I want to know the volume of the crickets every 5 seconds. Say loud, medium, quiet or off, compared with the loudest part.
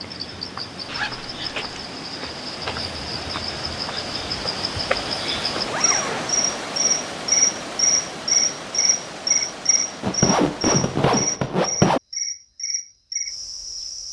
medium, loud, medium.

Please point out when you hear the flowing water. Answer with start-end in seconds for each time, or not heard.
0.0-11.4.